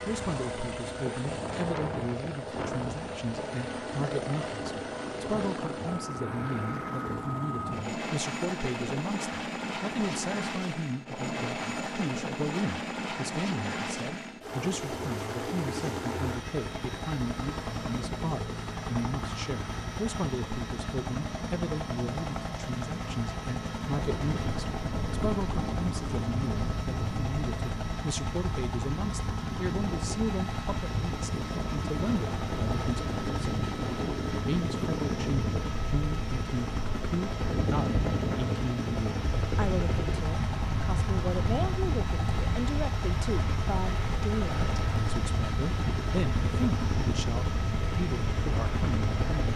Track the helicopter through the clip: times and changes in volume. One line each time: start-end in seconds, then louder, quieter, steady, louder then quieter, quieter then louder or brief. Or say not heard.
0.0-49.5 steady.